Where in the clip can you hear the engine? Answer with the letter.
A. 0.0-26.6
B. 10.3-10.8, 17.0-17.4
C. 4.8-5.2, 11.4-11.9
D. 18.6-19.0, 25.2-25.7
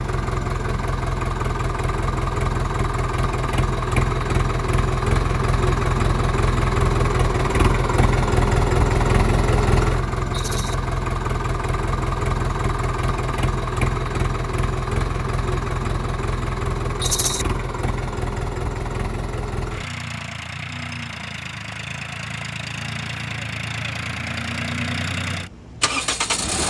A.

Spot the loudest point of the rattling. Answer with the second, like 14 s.
17 s.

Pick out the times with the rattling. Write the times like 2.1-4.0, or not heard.
10.3-10.8, 17.0-17.4.